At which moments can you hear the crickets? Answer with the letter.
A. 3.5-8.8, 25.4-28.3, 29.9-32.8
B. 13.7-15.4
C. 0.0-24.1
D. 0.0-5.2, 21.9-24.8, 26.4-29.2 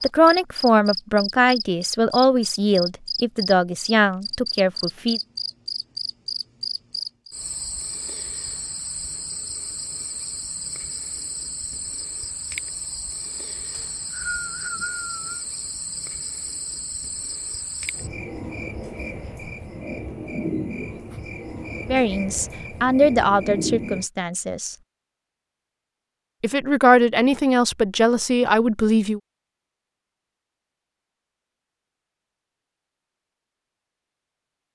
C.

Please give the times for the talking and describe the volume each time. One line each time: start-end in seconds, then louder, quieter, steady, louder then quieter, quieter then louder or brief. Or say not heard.
0.0-5.2 steady
21.9-24.8 brief
26.4-29.2 brief.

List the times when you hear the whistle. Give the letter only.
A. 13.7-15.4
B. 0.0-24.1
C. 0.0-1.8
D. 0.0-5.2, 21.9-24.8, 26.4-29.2
A.